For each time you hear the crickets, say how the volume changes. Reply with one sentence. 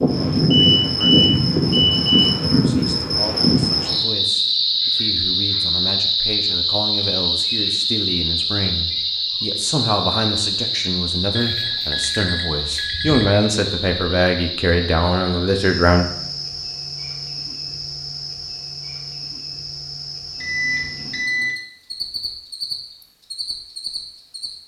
You can hear the crickets from 0.0 to 24.5 s, getting quieter.